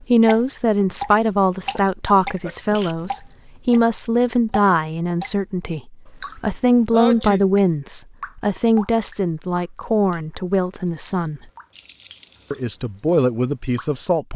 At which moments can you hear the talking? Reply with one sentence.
You can hear the talking from 0.1 to 11.4 s and from 12.5 to 14.3 s.